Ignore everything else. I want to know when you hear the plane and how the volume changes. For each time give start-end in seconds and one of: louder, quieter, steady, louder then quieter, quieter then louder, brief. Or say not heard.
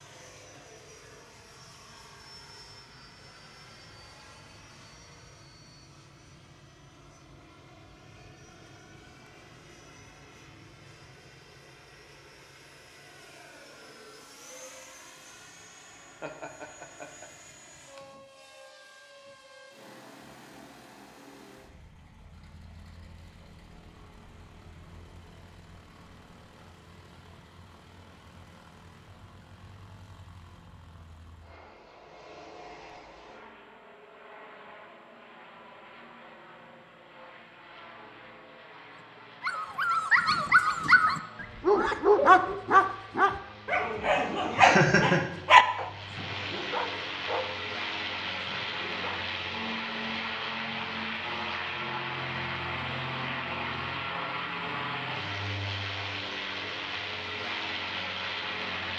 0.0-58.9 louder.